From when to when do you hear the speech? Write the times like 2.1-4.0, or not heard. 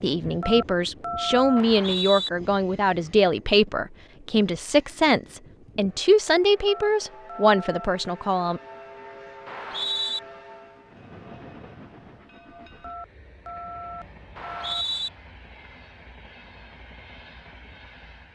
0.0-8.6.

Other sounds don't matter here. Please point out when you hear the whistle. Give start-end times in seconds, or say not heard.
1.6-2.3, 9.4-10.2, 14.3-15.1.